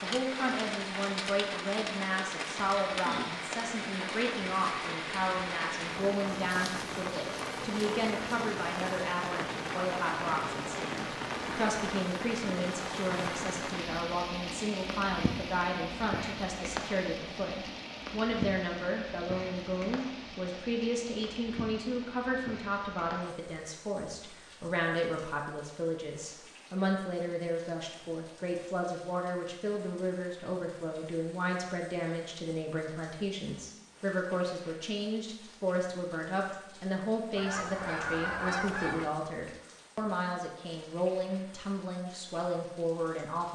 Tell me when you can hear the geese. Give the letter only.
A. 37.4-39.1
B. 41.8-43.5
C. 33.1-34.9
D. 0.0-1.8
A.